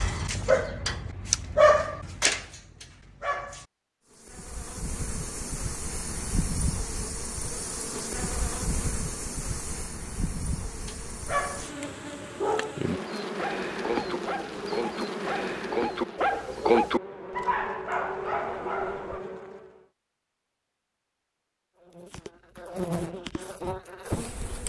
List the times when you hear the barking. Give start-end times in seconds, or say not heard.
0.0-3.6, 10.8-11.8, 12.3-19.2.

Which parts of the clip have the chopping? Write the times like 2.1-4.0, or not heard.
not heard.